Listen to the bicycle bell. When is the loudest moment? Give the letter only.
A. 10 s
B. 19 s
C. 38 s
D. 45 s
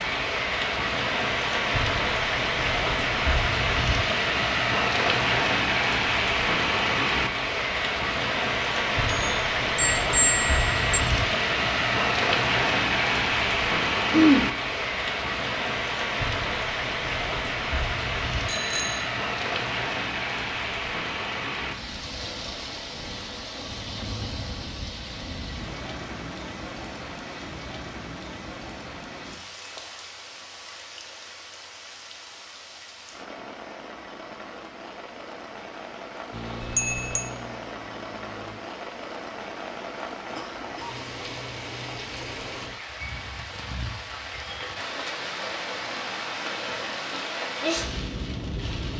A.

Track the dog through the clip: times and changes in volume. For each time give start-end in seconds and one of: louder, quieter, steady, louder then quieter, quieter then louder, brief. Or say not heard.
not heard.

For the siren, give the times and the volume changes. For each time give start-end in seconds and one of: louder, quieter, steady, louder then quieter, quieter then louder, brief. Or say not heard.
not heard.